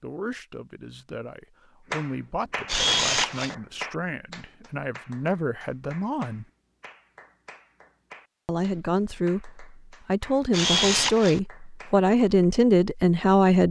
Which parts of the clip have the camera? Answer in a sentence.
The camera can be heard from 2.6 to 3.5 s and from 10.5 to 11.4 s.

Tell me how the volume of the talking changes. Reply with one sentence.
The loudness of the talking goes up.